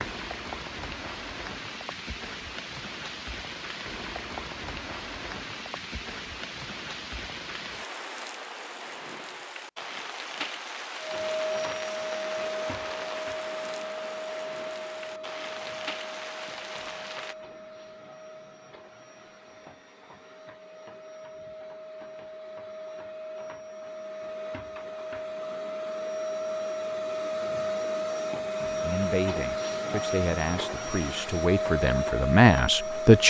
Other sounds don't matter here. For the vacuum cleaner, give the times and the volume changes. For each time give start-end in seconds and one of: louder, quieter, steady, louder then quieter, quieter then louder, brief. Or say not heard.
10.9-33.2 quieter then louder.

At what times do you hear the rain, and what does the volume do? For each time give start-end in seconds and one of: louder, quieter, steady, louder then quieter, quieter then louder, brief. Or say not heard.
0.0-17.4 steady.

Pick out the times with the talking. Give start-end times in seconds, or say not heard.
28.8-33.2.